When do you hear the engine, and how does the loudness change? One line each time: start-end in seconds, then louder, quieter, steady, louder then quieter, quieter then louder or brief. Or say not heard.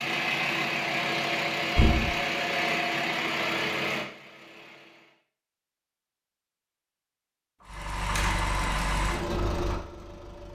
0.0-5.2 quieter
7.7-10.5 brief.